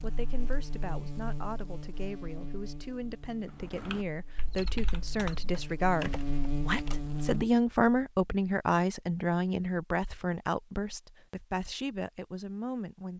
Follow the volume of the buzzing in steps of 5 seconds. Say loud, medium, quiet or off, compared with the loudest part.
medium, loud, off.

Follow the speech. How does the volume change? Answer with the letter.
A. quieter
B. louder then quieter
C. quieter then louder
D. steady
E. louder
B.